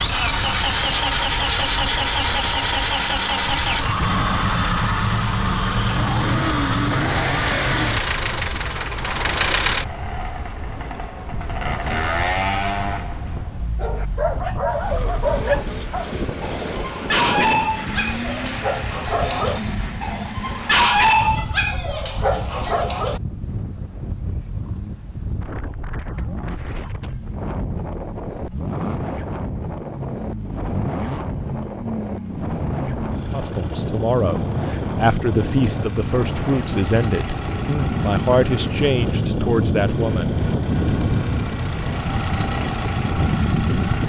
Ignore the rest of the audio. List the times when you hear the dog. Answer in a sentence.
You can hear the dog from 13.8 to 23.2 s.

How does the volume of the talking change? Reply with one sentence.
The volume of the talking stays about the same.